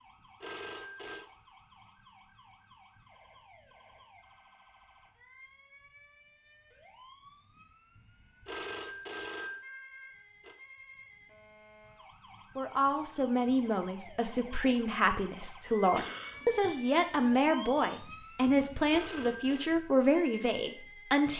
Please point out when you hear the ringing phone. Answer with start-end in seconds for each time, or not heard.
0.4-1.2, 8.4-10.6, 18.9-19.8.